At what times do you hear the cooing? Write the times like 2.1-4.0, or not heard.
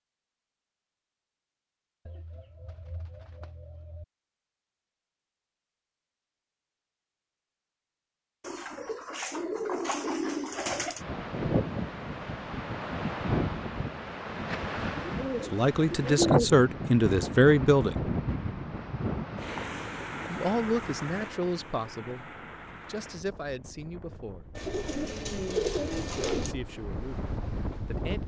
2.0-4.0, 8.4-11.0, 15.0-16.5, 24.6-26.6.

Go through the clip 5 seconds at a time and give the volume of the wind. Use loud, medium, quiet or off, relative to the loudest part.
off, off, loud, loud, medium, medium.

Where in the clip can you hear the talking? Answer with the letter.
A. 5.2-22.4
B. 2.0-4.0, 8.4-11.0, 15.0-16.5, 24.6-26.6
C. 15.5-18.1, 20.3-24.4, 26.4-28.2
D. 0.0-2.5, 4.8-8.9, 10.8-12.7
C.